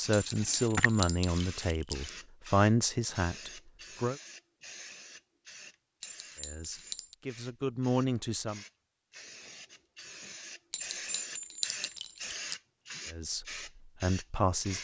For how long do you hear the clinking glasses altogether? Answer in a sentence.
The clinking glasses can be heard for 5 seconds in total.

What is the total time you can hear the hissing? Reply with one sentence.
You can hear the hissing for 15 seconds altogether.